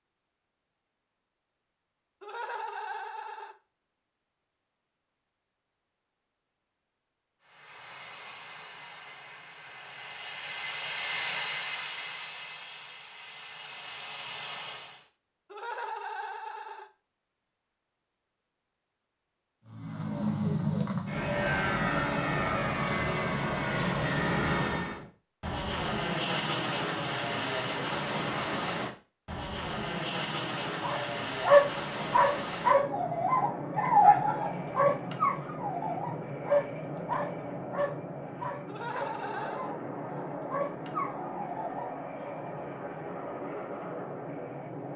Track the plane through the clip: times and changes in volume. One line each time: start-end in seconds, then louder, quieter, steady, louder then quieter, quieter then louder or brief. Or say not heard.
7.4-15.1 louder then quieter
19.6-44.9 quieter.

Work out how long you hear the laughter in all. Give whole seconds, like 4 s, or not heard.
4 s.